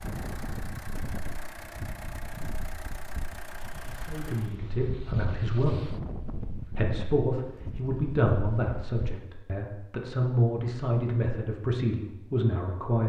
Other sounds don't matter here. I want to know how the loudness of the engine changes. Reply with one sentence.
The volume of the engine stays about the same.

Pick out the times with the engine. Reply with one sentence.
The engine can be heard from 0.0 to 4.6 s.